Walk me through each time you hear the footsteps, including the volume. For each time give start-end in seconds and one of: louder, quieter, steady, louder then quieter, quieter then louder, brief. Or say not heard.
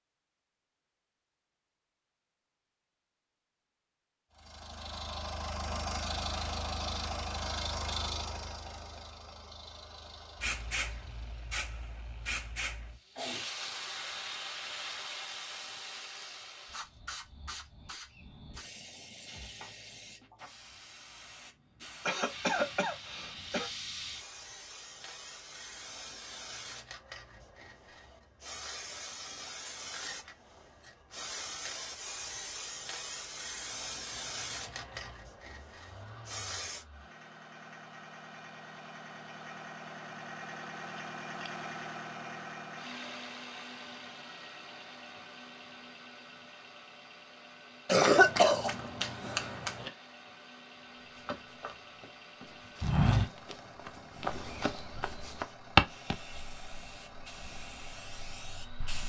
50.9-56.1 louder then quieter.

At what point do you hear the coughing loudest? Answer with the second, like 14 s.
48 s.